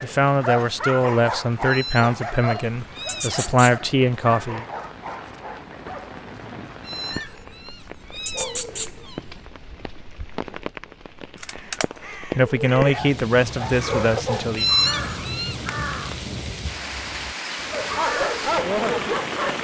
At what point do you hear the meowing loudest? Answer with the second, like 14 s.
15 s.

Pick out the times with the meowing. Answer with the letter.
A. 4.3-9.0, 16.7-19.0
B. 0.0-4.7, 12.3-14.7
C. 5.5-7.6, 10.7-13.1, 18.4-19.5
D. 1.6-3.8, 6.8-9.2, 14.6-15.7
D.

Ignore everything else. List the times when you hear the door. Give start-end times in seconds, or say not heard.
not heard.